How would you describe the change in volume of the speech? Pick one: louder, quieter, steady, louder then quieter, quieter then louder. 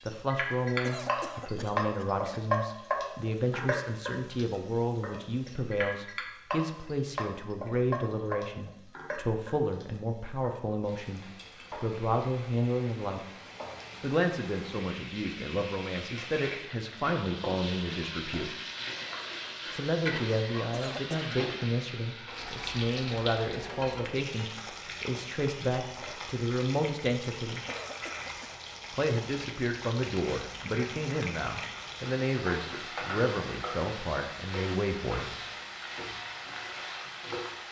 steady.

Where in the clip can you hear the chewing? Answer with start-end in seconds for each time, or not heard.
not heard.